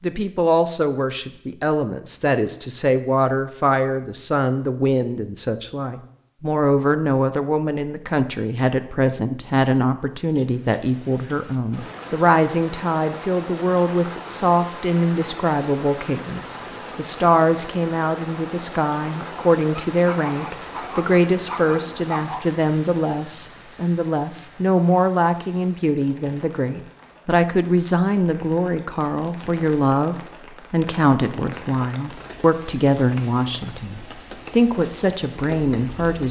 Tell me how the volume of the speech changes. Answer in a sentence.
The loudness of the speech stays about the same.